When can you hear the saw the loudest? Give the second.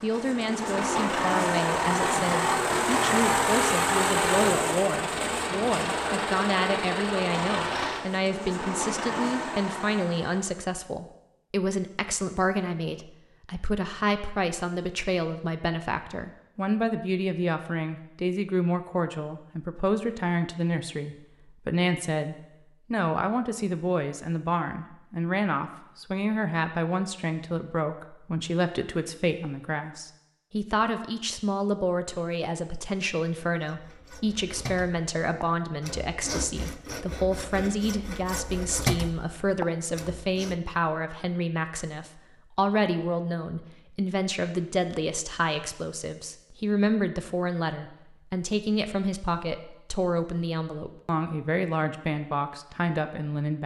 39 s.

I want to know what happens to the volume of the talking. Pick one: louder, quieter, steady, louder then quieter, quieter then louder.
steady.